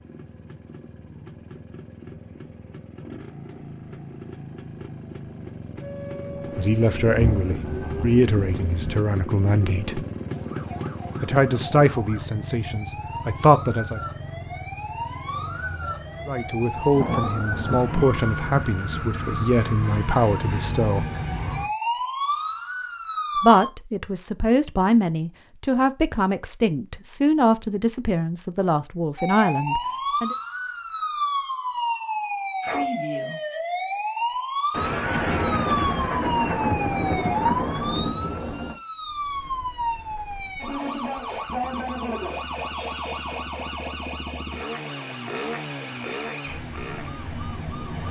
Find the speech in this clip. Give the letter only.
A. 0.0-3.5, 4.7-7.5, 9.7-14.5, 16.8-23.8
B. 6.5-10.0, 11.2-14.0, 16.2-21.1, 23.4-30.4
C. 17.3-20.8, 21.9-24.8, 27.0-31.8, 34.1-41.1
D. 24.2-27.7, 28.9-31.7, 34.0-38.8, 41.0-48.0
B.